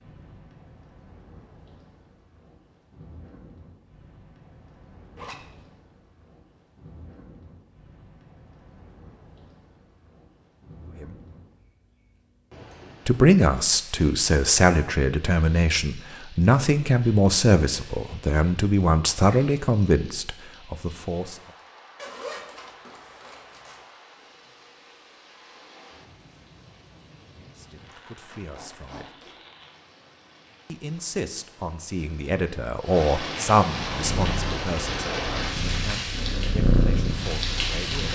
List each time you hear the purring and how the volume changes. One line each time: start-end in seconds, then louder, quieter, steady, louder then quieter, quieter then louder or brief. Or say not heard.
33.9-38.1 louder then quieter.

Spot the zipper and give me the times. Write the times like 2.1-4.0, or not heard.
5.2-5.7, 21.9-23.9, 28.3-29.4.